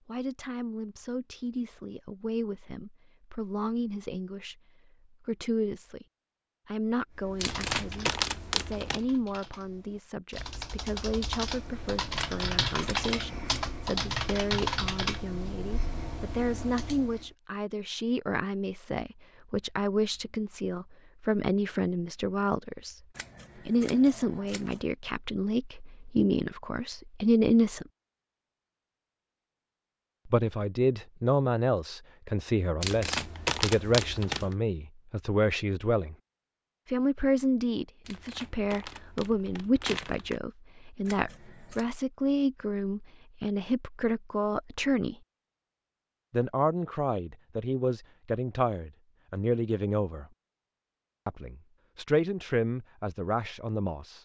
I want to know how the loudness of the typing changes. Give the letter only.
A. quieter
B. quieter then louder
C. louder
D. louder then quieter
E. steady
D.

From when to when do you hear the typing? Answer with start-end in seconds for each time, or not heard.
7.2-17.3.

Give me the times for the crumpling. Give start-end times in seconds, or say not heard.
7.4-9.1, 32.8-34.5, 38.0-40.4.